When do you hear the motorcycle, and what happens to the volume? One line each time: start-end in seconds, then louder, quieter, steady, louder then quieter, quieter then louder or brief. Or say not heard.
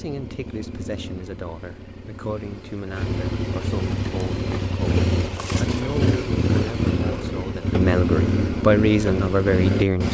0.0-10.0 louder.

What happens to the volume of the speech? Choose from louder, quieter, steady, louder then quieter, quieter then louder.
louder.